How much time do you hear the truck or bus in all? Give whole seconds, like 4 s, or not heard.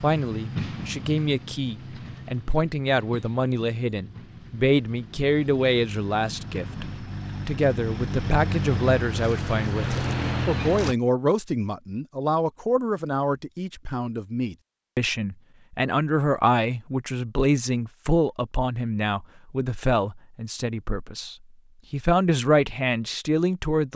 11 s.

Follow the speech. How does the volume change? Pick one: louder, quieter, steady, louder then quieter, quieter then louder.
steady.